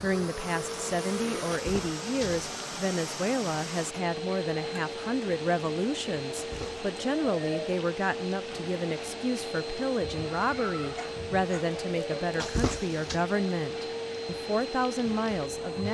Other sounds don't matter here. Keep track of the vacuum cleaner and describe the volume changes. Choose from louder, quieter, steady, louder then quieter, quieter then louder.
steady.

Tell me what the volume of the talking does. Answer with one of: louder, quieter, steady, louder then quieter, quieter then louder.
steady.